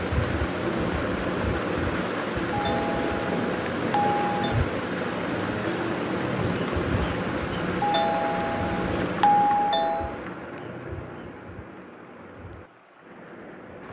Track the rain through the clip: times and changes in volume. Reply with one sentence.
You can hear the rain from 0.0 to 13.8 s, getting quieter.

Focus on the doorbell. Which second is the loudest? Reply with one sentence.
The loudest moment of the doorbell is at 9 seconds.